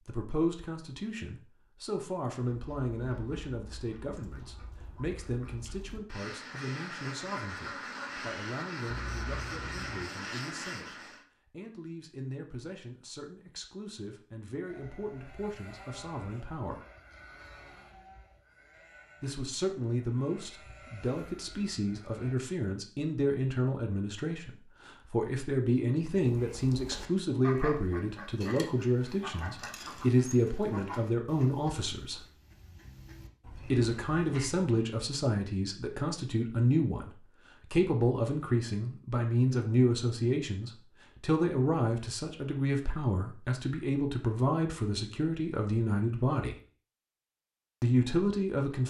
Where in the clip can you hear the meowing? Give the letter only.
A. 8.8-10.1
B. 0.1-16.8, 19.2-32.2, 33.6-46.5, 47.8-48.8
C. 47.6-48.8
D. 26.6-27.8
A.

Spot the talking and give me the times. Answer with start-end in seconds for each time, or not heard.
0.1-16.8, 19.2-32.2, 33.6-46.5, 47.8-48.8.